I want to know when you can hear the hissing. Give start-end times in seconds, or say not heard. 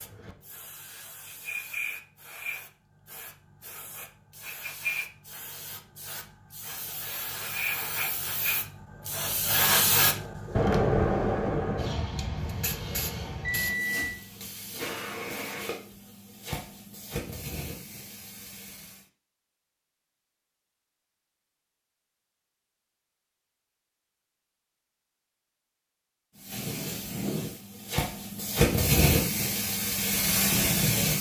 0.0-19.1, 26.4-31.1.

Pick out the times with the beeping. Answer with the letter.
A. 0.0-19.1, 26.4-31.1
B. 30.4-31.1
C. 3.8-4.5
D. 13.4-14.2
D.